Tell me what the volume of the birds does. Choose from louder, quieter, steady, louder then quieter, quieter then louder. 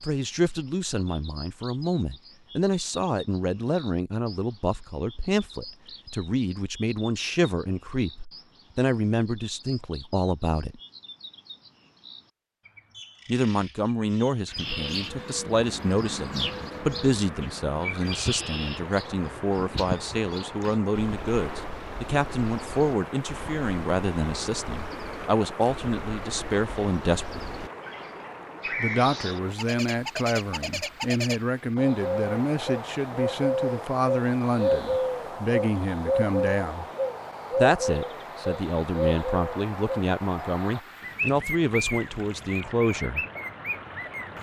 louder.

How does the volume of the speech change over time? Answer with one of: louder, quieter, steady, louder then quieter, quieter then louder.
steady.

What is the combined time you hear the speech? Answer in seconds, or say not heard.
39 s.